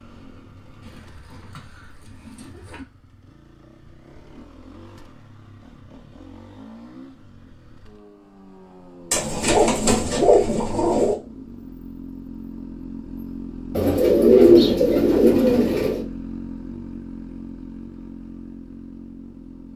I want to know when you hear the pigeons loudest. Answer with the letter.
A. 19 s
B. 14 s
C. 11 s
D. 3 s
B.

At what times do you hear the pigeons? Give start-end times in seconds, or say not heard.
0.8-2.9, 9.1-11.2, 13.7-16.1.